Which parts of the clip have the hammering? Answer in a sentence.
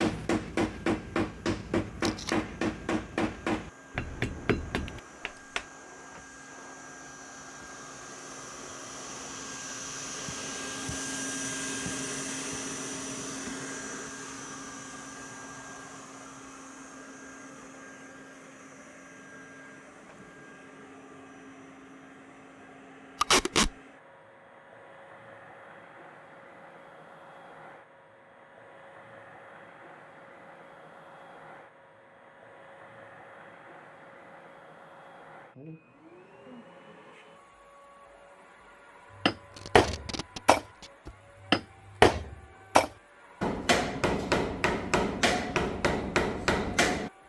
The hammering can be heard from 0.0 to 5.7 s and from 39.2 to 47.2 s.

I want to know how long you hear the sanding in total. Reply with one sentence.
The sanding can't be heard in this clip.